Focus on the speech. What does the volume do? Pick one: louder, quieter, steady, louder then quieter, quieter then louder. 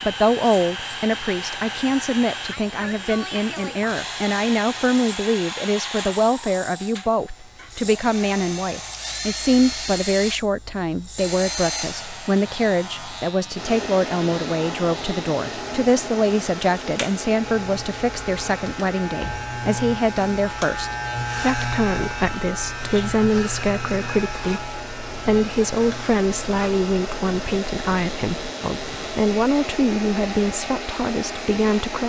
steady.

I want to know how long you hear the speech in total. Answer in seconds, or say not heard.
32 s.